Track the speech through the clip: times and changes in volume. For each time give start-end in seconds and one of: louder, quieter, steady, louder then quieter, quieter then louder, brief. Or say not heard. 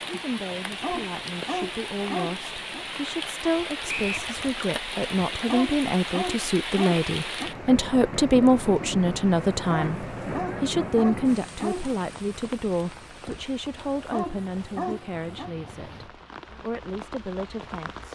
0.1-18.1 louder then quieter.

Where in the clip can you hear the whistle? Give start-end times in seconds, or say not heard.
3.9-4.3.